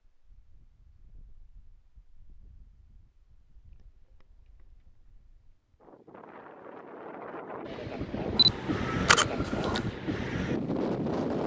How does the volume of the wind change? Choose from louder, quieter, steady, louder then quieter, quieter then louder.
louder.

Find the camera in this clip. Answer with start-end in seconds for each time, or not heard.
8.3-9.8.